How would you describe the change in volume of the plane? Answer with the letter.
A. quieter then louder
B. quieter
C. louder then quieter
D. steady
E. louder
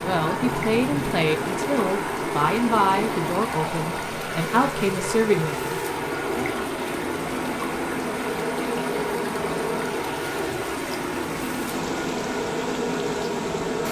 D.